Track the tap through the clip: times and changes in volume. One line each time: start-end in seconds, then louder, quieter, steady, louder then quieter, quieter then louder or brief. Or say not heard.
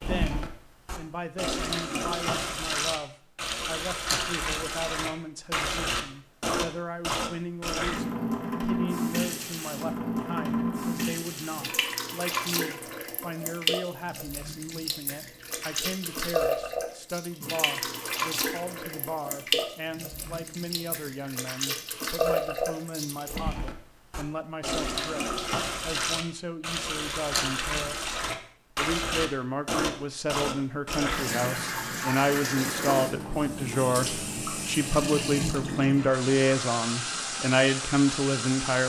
0.0-38.8 steady.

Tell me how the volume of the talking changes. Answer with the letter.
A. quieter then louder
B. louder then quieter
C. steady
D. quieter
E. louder
E.